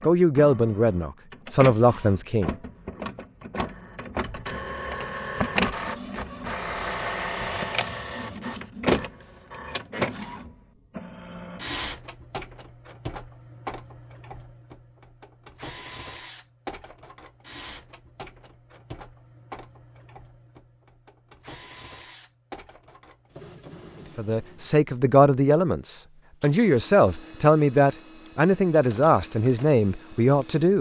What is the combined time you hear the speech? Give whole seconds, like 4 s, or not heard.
9 s.